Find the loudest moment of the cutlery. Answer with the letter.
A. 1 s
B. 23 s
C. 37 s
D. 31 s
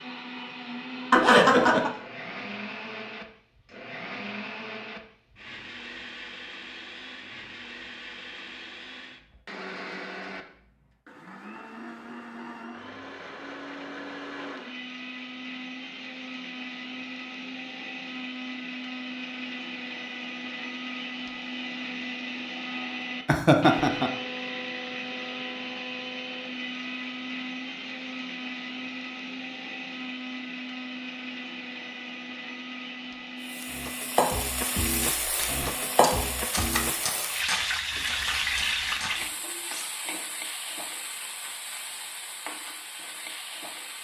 C.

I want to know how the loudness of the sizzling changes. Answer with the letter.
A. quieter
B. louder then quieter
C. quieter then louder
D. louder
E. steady
A.